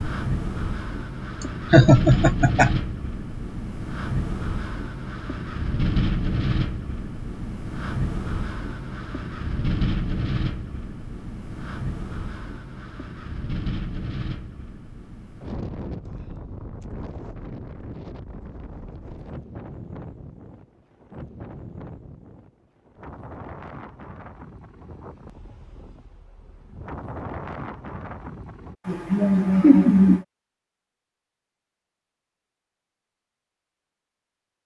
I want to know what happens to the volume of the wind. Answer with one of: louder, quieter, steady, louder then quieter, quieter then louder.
quieter.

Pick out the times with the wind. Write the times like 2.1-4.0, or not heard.
0.0-28.8.